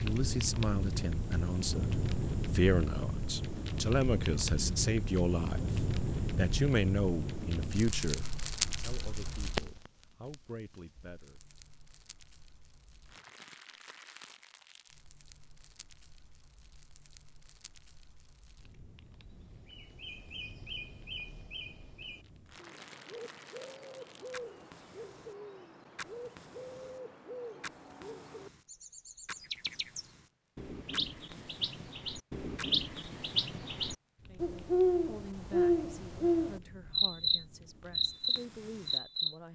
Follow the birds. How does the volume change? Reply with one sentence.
The loudness of the birds goes up.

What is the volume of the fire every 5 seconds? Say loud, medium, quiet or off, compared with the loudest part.
loud, loud, quiet, quiet, quiet, quiet, quiet, quiet.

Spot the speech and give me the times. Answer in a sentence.
You can hear the speech from 0.0 to 11.4 s and from 34.2 to 39.4 s.